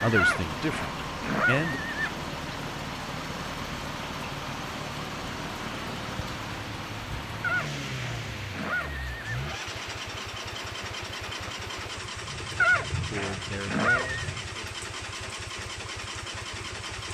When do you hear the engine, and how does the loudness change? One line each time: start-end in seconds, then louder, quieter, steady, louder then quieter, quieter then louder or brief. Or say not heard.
0.0-17.1 steady.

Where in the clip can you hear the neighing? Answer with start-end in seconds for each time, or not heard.
0.1-2.1, 7.4-9.4, 12.6-14.2.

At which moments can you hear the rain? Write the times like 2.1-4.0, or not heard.
0.0-17.1.